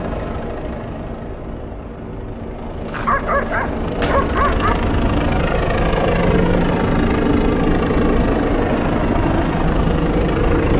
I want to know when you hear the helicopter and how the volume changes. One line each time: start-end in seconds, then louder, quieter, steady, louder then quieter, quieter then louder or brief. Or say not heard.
0.0-10.7 louder.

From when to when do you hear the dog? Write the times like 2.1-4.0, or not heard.
2.9-4.8.